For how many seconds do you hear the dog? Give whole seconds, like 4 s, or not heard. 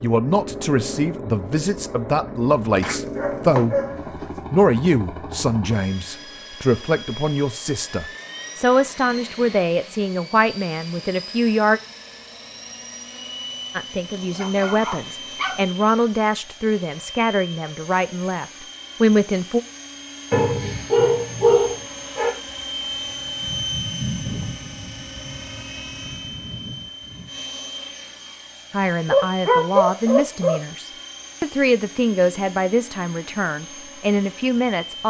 6 s.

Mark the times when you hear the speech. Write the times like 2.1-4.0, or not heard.
0.0-3.8, 4.5-11.8, 13.8-19.6, 28.7-35.0.